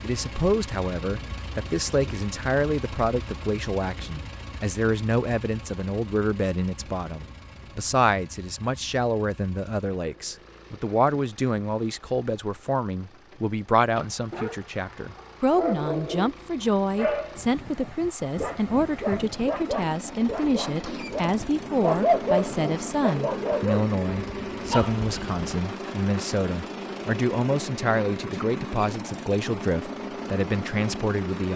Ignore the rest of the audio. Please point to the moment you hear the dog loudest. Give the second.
22 s.